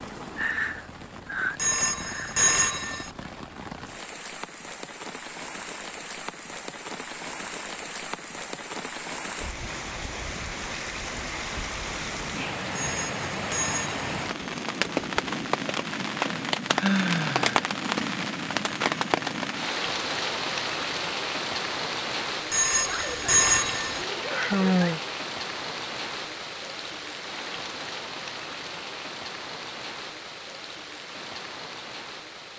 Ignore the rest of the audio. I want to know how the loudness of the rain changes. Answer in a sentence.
The loudness of the rain goes up, then down.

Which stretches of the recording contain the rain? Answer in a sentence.
The rain can be heard from 0.0 to 32.5 s.